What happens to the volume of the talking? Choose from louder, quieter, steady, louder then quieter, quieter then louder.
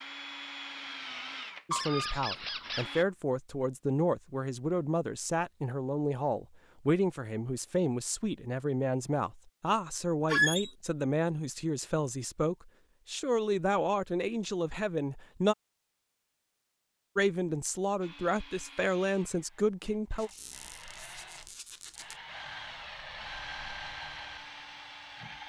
steady.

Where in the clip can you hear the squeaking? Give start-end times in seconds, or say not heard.
1.7-3.0, 10.2-10.7, 20.2-22.1.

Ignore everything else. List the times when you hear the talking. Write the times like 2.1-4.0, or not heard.
1.6-15.6, 17.1-20.3.